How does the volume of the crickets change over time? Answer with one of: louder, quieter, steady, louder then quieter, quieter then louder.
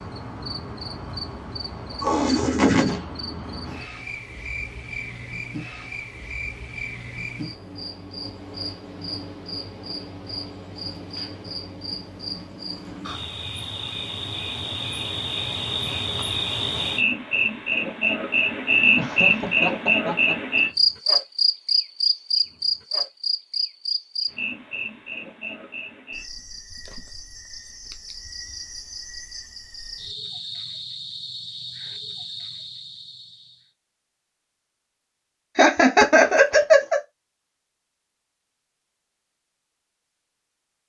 louder then quieter.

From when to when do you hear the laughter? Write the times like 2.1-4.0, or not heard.
2.0-3.0, 18.9-20.4, 35.5-37.0.